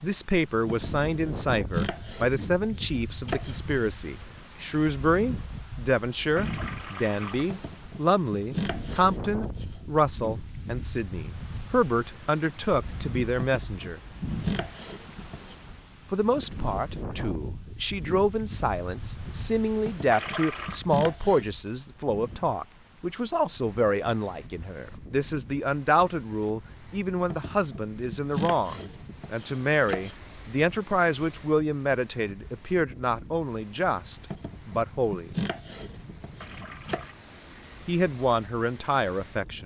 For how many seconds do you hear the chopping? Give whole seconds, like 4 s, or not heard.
15 s.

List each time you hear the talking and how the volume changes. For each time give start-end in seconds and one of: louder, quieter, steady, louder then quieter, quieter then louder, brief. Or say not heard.
0.0-14.0 steady
16.1-35.4 steady
37.9-39.6 brief.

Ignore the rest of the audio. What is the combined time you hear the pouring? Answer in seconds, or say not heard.
3 s.